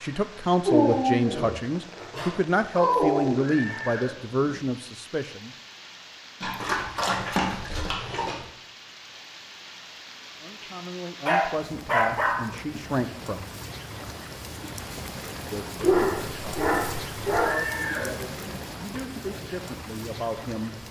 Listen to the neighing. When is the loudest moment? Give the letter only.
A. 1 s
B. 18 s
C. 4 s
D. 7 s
B.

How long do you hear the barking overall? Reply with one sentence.
You can hear the barking for 8 seconds altogether.